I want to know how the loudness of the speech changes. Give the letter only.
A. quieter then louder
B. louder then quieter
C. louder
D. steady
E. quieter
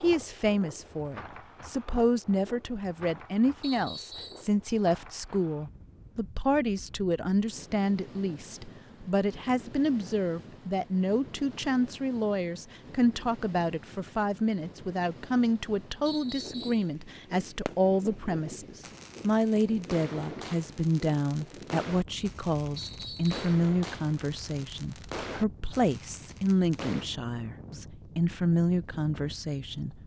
D.